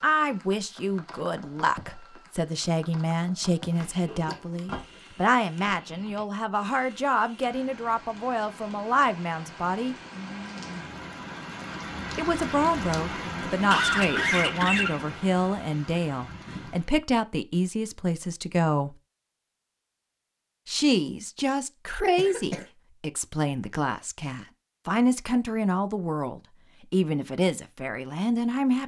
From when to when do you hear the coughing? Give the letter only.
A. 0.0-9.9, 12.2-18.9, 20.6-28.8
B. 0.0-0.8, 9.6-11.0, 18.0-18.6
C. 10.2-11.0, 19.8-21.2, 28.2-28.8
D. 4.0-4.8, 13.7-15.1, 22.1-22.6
D.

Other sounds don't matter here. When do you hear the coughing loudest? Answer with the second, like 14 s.
14 s.